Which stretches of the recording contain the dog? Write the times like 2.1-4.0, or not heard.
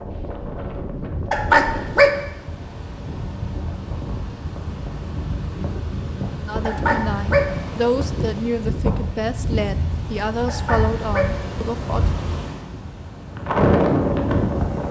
1.3-2.2, 6.7-7.5, 10.4-11.4.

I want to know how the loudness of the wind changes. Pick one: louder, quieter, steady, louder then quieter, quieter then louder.
louder.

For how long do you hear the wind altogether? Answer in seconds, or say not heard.
15 s.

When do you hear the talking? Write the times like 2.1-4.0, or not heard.
6.4-12.1.